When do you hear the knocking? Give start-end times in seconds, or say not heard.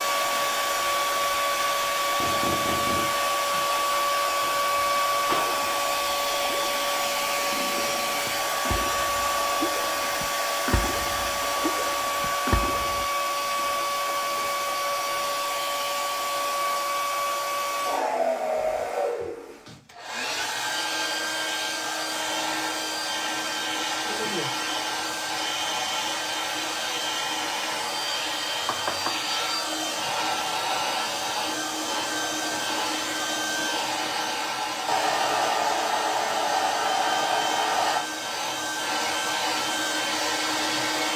2.2-3.2, 28.6-29.2.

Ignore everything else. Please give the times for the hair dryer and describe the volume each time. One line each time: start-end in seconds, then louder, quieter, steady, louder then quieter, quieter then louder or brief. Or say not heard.
0.0-41.1 steady.